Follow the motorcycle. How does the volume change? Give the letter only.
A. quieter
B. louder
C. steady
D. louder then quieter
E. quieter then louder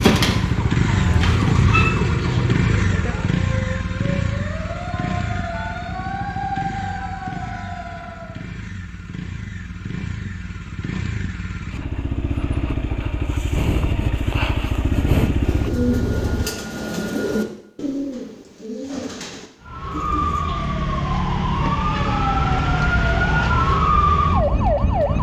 E.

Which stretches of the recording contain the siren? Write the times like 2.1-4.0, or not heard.
0.0-8.5, 19.6-25.1.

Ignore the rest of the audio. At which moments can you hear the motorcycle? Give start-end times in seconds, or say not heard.
0.0-16.4.